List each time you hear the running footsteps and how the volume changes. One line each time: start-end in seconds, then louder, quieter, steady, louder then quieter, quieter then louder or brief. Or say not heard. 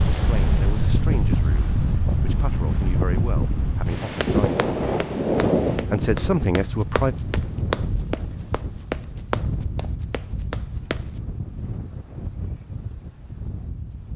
4.2-11.1 louder then quieter.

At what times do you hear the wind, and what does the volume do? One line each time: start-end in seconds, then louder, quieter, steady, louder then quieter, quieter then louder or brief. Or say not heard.
0.0-14.1 quieter.